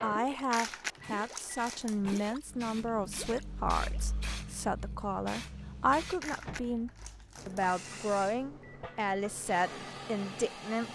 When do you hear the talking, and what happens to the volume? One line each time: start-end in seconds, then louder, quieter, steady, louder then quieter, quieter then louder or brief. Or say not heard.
0.0-10.9 steady.